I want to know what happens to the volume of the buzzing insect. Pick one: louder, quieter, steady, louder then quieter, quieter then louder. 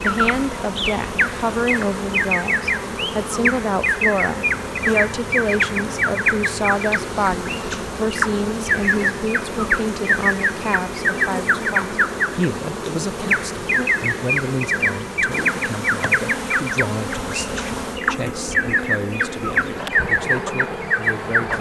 steady.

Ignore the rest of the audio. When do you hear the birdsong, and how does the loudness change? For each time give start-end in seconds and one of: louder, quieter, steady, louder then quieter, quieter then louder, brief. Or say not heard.
0.0-21.5 steady.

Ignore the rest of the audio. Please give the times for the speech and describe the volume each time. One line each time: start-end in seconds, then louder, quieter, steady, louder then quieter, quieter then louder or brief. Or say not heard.
0.0-21.5 quieter.